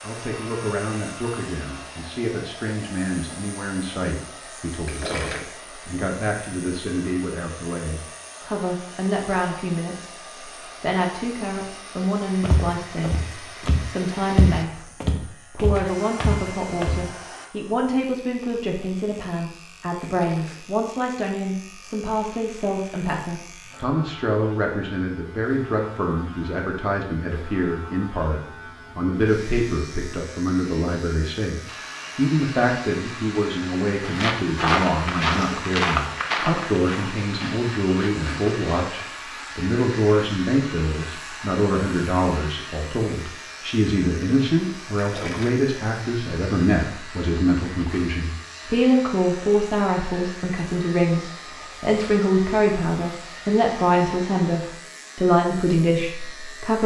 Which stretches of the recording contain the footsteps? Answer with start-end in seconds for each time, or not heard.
12.4-17.1, 34.0-39.1.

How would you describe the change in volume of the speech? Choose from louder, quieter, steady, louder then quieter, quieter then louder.
louder.